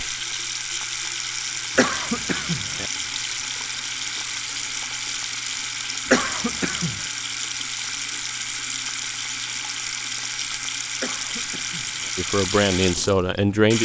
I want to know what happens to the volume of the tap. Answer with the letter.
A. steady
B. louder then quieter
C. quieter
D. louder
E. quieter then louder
A.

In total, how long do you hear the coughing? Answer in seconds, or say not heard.
3 s.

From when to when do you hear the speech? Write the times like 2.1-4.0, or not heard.
12.2-13.7.